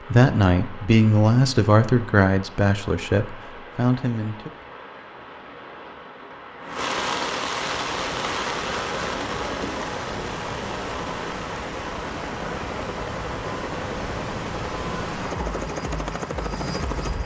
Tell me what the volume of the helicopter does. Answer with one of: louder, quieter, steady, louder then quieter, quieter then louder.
louder.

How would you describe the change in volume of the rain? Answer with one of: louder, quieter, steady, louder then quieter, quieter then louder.
louder then quieter.